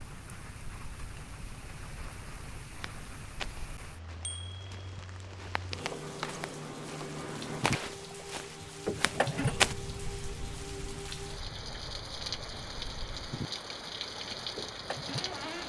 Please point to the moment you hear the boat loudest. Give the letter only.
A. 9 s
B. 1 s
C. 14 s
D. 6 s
A.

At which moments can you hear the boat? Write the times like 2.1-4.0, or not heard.
0.0-15.6.